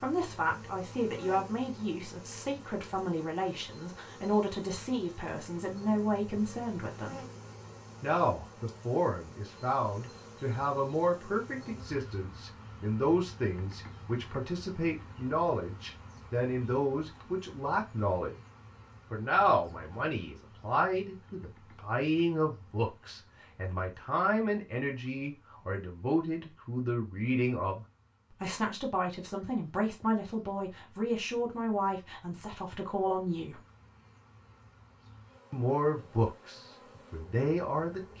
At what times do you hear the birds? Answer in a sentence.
You can't hear the birds here.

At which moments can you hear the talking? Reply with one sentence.
You can hear the talking from 0.0 to 7.2 s, from 8.0 to 18.4 s, from 19.1 to 33.6 s and from 35.5 to 38.1 s.